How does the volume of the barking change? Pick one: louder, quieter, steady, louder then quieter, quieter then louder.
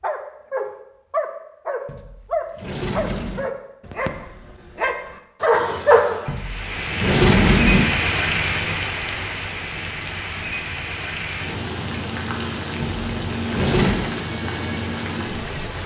quieter then louder.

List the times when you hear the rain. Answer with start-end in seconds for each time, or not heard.
6.2-15.8.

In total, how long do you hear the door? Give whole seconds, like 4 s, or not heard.
5 s.